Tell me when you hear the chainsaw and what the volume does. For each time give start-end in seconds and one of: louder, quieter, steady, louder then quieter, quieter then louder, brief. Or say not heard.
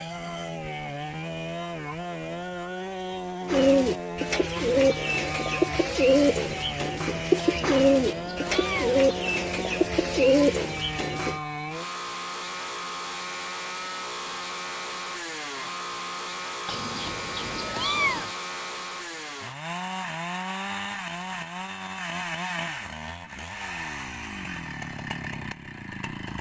0.0-26.3 steady.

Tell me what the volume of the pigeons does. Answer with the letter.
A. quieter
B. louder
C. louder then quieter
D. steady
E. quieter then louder
D.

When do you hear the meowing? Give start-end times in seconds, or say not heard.
7.3-9.0, 16.6-18.3.